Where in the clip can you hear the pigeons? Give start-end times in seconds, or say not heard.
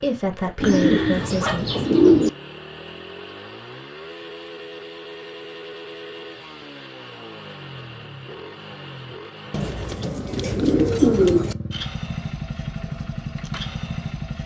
0.6-2.3, 9.5-11.6.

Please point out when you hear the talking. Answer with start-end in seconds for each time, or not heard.
0.0-1.9.